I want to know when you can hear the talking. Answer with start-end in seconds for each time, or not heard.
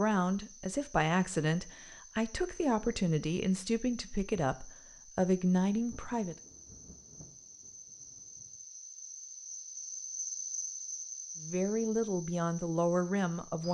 0.0-6.3, 11.4-13.6.